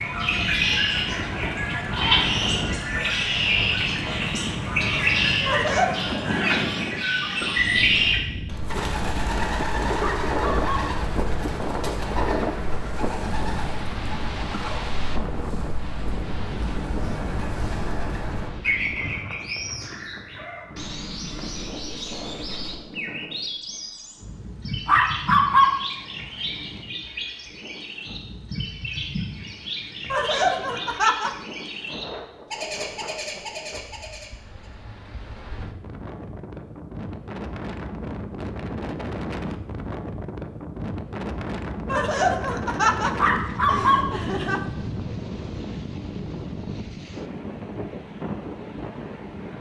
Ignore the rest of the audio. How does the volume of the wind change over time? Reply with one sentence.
The loudness of the wind goes down, then up.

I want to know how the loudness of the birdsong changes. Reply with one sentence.
The volume of the birdsong goes down.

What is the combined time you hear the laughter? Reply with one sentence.
The laughter can be heard for 5 seconds in total.